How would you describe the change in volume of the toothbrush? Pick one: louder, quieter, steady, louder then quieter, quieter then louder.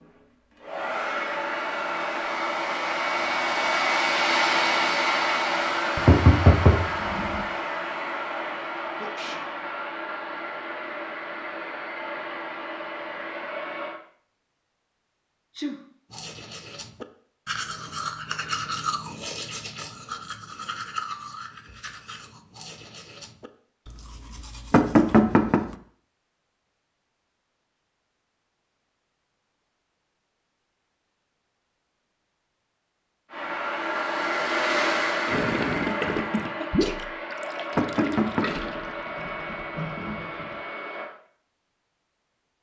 quieter.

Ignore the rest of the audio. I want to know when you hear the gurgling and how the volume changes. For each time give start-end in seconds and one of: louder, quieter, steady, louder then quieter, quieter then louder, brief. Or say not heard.
35.2-40.5 quieter.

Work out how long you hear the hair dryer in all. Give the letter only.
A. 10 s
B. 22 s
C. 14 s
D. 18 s
B.